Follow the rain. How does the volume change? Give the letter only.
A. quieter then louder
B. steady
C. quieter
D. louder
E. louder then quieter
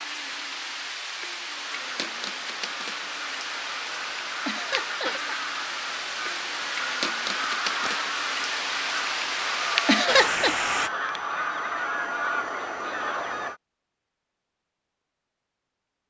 D.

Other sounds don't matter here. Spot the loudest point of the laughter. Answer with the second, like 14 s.
10 s.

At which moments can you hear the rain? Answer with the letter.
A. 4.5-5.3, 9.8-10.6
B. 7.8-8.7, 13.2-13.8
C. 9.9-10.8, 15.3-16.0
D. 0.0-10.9
D.